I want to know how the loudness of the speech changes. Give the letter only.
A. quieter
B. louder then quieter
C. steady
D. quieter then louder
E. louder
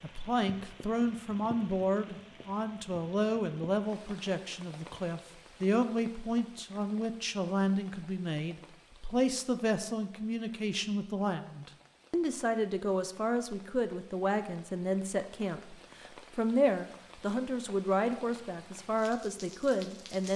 C.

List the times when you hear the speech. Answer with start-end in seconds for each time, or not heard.
0.0-20.3.